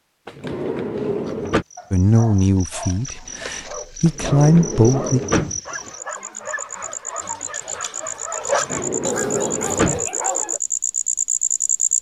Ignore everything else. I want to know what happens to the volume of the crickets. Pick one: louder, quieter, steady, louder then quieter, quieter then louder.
louder.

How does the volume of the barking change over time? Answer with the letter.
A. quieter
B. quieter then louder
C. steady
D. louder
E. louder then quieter
D.